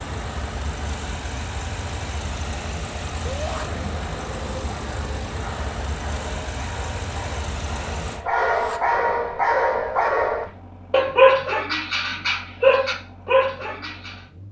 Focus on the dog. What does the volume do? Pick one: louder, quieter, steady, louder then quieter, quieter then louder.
louder.